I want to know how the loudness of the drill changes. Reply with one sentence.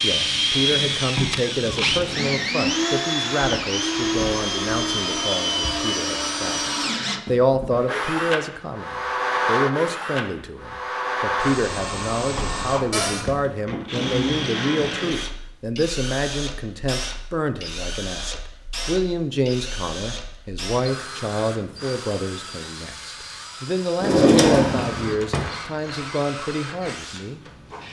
The volume of the drill goes down.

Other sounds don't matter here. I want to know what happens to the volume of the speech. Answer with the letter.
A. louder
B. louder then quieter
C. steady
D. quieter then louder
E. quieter
C.